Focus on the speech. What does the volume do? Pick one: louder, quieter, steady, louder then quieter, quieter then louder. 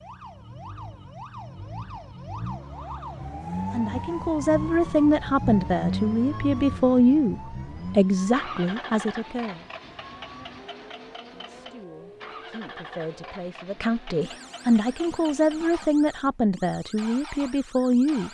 quieter then louder.